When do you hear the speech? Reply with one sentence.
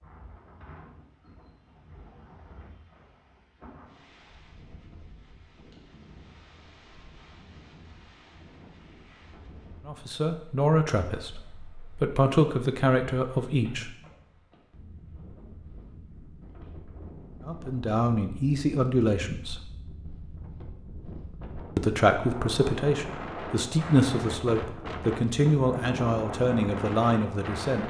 You can hear the speech from 9.8 to 13.9 s, from 17.4 to 19.6 s and from 21.8 to 27.8 s.